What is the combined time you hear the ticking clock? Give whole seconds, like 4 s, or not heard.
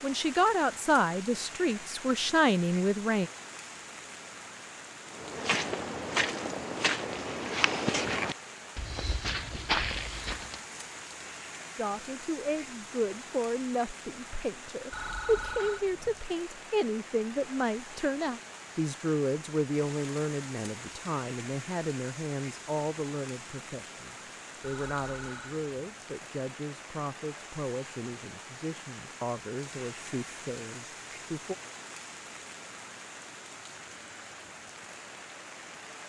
not heard.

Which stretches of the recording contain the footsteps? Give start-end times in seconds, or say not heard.
5.1-10.6.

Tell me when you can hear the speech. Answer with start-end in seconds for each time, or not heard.
0.0-3.3, 11.8-31.6.